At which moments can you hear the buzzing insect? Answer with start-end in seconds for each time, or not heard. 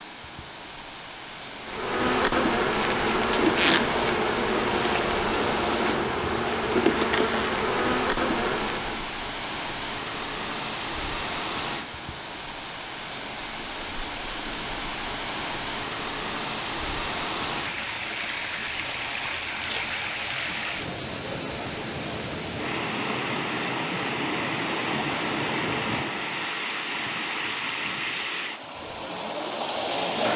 1.6-9.1.